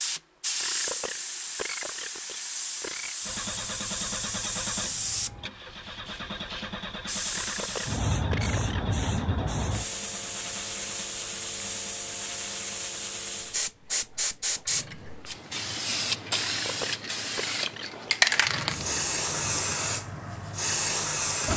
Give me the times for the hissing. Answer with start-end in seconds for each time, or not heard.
0.0-21.5.